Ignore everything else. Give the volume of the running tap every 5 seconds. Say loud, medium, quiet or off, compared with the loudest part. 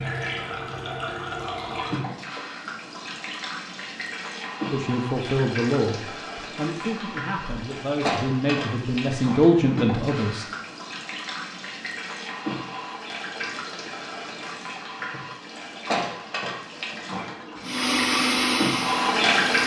medium, medium, medium, loud.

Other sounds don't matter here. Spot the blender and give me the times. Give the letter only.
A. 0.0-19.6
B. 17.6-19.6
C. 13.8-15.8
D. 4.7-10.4
B.